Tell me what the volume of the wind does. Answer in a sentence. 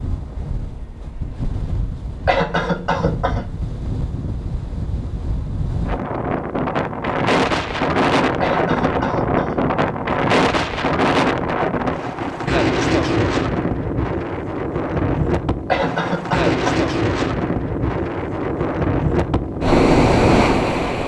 The loudness of the wind goes up.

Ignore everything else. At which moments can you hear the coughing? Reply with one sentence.
The coughing can be heard from 2.2 to 3.5 s, from 8.4 to 9.6 s and from 15.7 to 16.9 s.